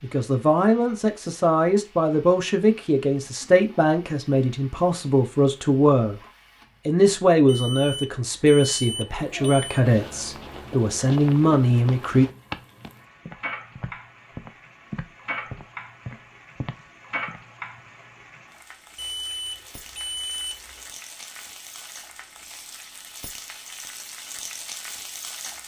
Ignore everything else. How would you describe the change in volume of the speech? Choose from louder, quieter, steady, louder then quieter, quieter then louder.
steady.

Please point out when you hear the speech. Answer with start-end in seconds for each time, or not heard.
0.0-6.2, 6.8-12.2.